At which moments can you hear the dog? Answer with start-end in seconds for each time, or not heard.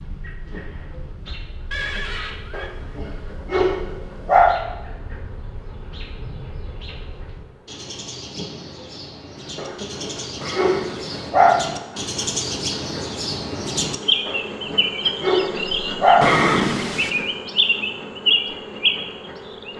2.5-4.5, 9.6-11.6, 14.2-16.2.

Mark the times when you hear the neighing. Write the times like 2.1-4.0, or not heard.
1.7-2.7, 10.4-11.3, 16.2-17.1.